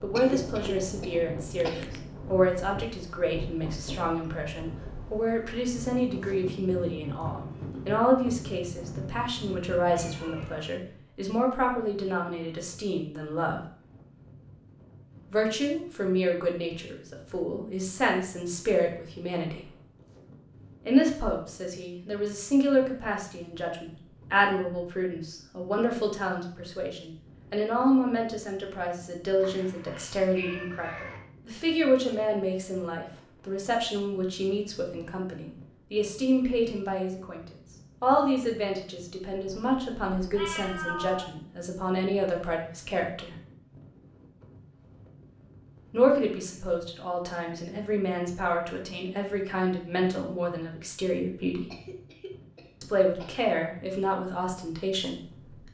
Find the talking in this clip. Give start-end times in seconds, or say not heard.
0.0-13.6, 15.3-19.7, 20.9-43.4, 45.9-51.7, 52.8-55.6.